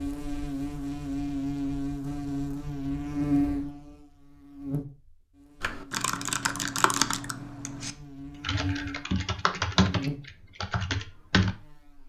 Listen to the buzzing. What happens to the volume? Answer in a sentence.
The loudness of the buzzing goes down, then up.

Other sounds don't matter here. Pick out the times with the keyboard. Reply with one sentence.
You can hear the keyboard from 5.6 to 11.6 s.